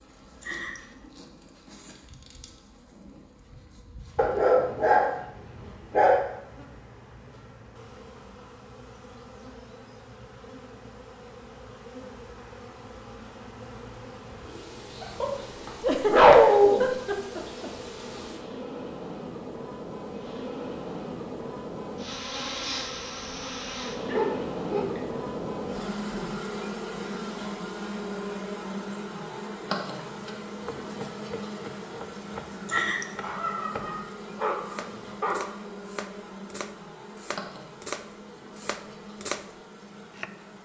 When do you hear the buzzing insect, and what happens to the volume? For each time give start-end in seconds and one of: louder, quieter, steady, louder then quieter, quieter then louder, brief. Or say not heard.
0.0-40.6 louder then quieter.